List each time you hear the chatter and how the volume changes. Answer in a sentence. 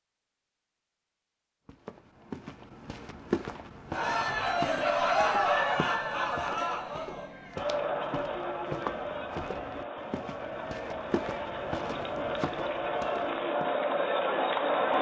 The chatter can be heard from 3.9 to 14.9 s, getting quieter then louder.